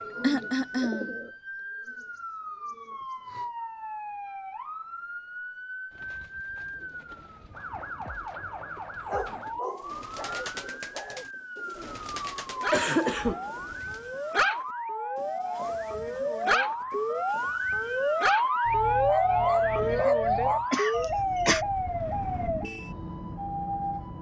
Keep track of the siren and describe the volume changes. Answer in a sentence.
The volume of the siren goes up.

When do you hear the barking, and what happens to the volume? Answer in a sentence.
You can hear the barking from 9.1 to 20.6 s, getting louder.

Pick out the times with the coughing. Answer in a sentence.
You can hear the coughing from 0.2 to 1.1 s, from 12.7 to 13.8 s and from 20.7 to 21.6 s.